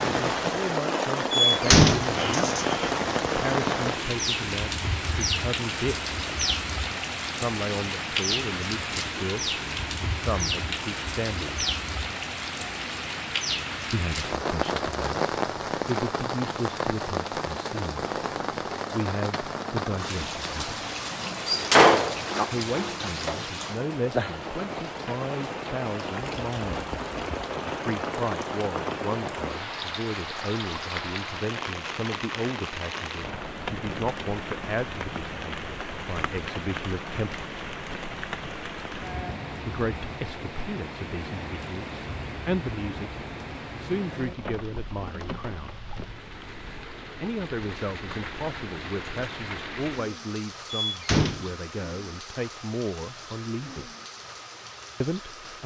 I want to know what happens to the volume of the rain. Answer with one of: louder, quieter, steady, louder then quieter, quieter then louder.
quieter.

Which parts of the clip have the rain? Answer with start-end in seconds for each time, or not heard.
0.0-55.6.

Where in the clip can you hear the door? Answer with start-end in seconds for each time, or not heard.
1.3-2.6, 21.4-22.4, 50.7-51.8.